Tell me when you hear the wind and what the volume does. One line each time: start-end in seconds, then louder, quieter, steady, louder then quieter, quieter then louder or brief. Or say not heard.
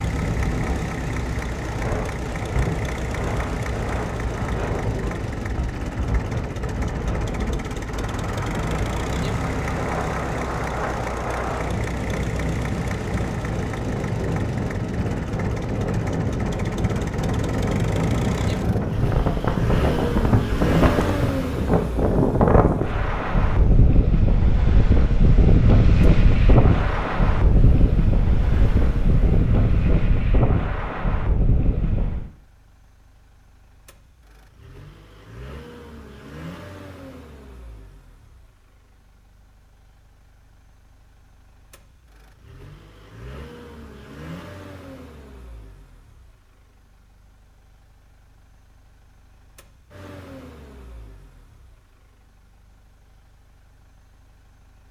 0.0-32.3 louder.